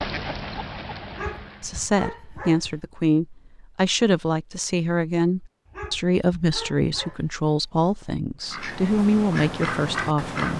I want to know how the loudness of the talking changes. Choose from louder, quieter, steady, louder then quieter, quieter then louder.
steady.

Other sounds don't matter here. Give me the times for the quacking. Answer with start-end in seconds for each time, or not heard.
0.0-1.9, 8.4-10.5.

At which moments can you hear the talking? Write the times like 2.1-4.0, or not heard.
1.6-10.5.